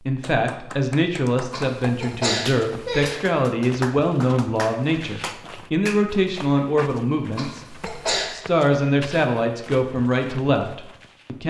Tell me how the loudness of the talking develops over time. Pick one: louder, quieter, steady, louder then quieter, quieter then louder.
steady.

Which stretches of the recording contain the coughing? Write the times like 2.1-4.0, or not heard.
1.5-3.1, 7.3-8.3.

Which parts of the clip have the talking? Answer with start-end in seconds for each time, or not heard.
0.1-11.4.